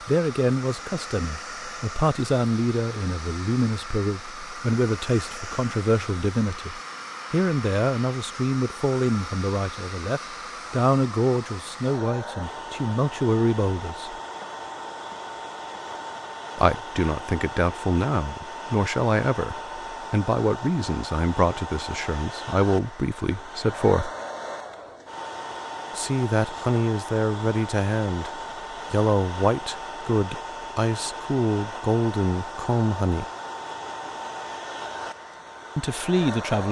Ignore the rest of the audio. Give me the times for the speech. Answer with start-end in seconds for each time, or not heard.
0.1-14.2, 16.6-24.1, 25.9-33.2, 35.8-36.6.